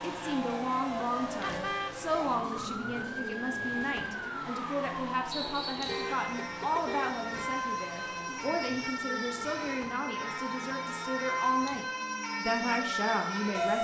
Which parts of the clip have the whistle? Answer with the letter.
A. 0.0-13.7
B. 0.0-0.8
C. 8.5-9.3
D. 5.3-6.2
D.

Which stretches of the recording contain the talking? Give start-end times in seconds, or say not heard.
0.0-13.7.